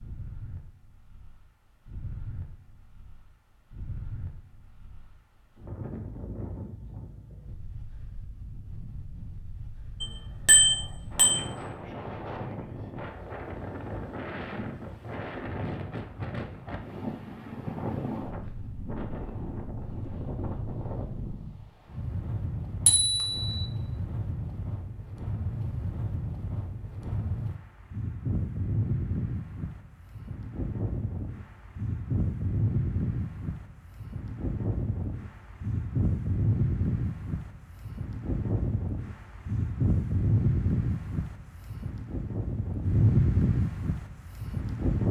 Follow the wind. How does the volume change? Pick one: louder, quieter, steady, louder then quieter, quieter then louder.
louder.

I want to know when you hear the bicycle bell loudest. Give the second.
11 s.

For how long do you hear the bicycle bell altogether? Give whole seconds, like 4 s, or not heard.
2 s.